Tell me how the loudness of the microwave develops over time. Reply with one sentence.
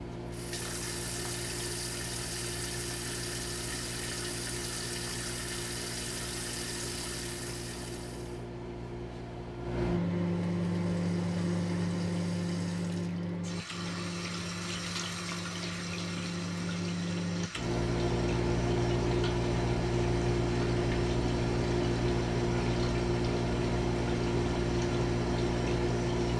The loudness of the microwave goes up.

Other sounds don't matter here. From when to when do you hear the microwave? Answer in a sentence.
The microwave can be heard from 0.0 to 26.3 s.